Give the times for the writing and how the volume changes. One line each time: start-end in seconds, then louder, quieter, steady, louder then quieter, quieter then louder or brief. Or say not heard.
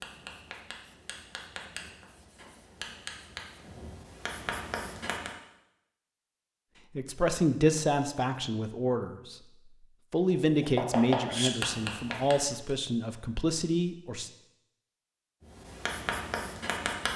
0.0-5.3 louder
10.3-12.7 brief
15.4-17.1 brief.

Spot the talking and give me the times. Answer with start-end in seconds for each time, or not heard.
7.0-9.3, 10.1-14.3.